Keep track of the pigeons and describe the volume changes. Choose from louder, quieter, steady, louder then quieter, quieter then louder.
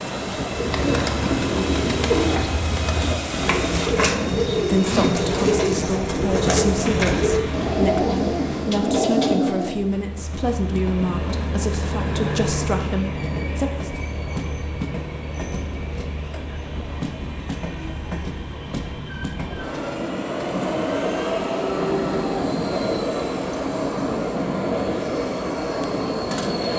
steady.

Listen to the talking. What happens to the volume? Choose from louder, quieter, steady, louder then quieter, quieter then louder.
steady.